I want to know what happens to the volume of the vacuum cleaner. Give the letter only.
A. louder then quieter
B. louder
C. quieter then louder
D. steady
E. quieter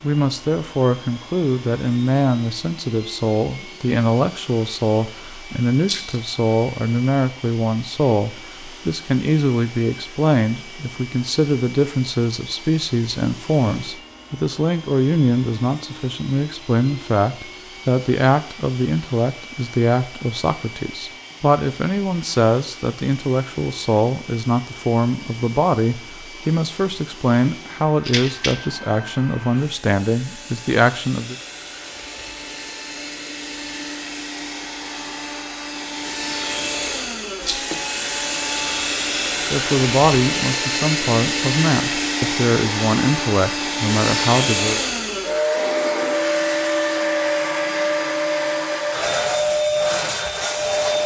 B.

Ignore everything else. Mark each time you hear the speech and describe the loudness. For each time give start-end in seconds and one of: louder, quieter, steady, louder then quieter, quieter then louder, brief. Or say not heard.
0.0-31.4 steady
39.5-44.8 steady.